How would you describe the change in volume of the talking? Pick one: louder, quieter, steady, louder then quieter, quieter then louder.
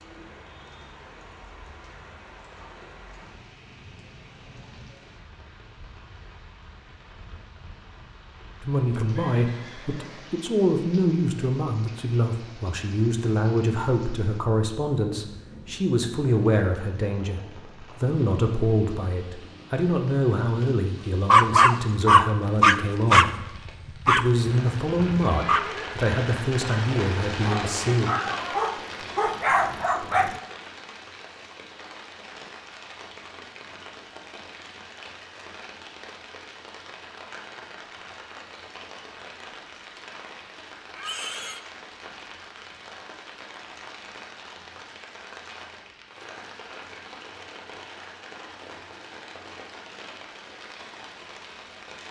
steady.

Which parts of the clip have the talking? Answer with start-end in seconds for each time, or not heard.
8.6-28.1.